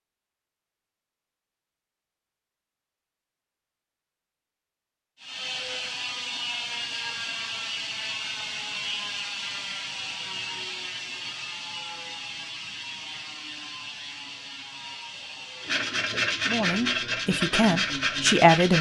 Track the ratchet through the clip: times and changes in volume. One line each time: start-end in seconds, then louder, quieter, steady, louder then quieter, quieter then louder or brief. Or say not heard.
5.2-15.9 quieter.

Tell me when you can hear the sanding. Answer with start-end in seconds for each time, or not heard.
15.6-18.7.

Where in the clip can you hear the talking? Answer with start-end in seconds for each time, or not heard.
16.4-18.7.